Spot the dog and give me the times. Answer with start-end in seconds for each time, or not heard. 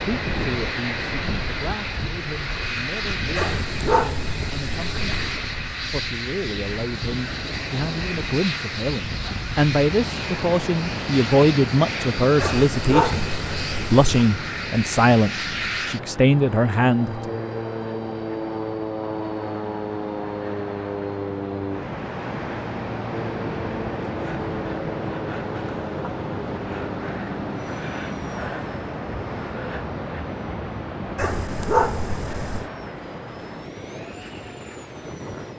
3.4-5.4, 12.3-14.3, 31.1-32.6.